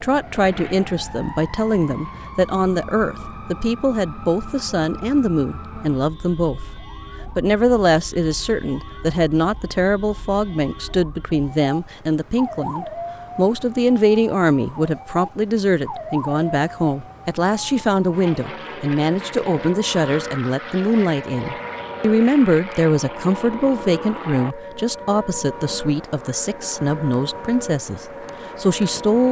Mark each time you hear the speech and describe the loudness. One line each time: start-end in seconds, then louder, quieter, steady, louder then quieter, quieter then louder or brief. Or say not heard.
0.0-29.2 steady.